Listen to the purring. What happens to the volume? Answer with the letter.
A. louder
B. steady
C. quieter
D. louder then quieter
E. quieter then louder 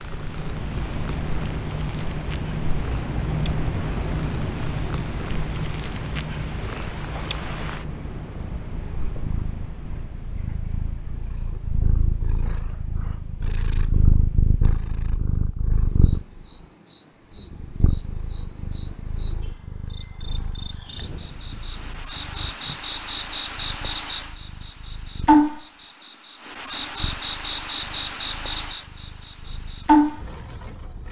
D.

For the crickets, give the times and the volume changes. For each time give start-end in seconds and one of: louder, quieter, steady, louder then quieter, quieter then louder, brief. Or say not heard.
0.0-31.0 quieter then louder.